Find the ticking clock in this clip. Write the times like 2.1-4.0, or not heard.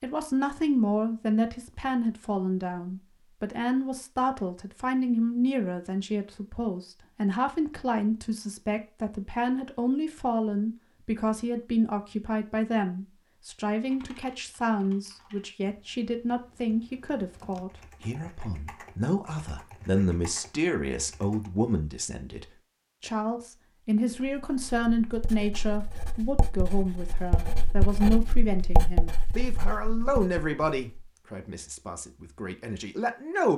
not heard.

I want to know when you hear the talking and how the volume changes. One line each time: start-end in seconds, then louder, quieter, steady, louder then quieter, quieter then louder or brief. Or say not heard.
0.0-33.5 steady.